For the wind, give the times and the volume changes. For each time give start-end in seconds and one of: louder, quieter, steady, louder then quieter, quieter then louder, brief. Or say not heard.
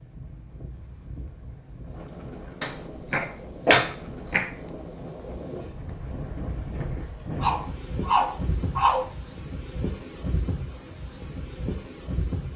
0.0-12.5 louder.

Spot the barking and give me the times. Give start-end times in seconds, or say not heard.
2.6-4.5, 7.4-9.1.